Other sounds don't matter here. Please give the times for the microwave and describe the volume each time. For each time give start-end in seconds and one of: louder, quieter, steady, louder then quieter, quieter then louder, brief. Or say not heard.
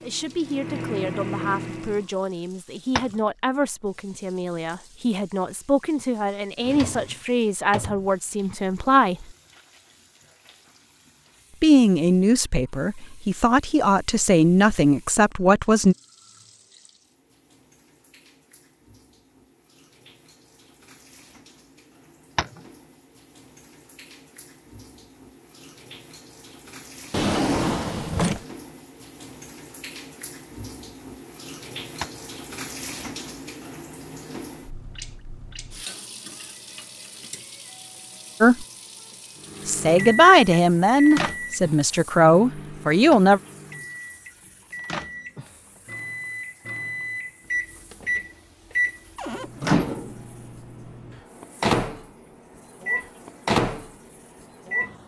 0.0-2.0 brief
39.5-55.0 quieter then louder.